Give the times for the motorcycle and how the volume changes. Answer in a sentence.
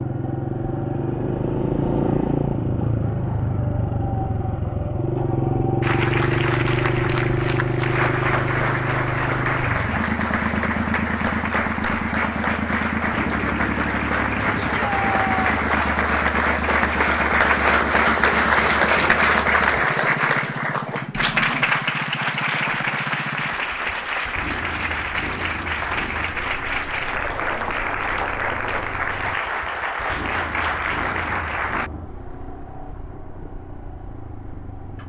The motorcycle can be heard from 0.0 to 35.0 s, getting quieter.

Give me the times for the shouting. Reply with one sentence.
You can hear the shouting from 14.6 to 15.8 s.